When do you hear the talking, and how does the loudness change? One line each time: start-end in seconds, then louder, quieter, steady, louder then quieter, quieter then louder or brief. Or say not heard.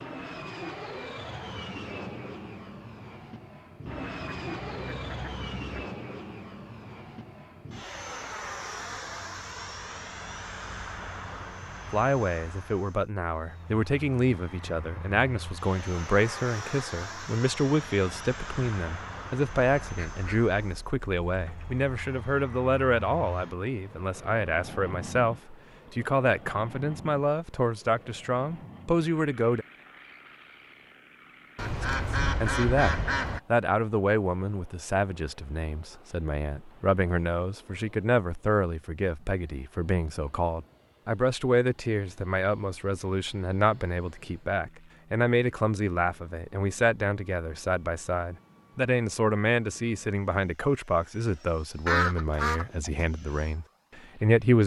11.9-29.6 steady
31.8-54.6 steady.